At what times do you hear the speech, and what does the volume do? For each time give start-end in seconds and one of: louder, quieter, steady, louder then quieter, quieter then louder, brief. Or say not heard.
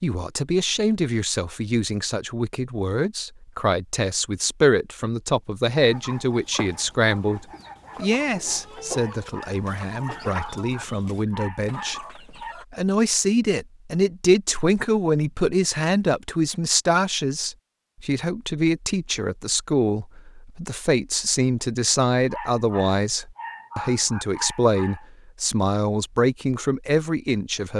0.0-27.7 steady.